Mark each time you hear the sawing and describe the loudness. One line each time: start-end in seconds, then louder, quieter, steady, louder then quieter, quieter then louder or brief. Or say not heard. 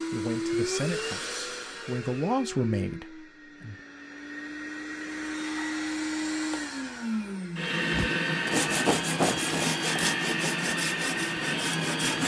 7.9-12.2 quieter.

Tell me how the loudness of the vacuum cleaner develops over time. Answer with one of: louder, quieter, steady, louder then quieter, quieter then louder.
quieter then louder.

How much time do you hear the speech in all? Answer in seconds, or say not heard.
4 s.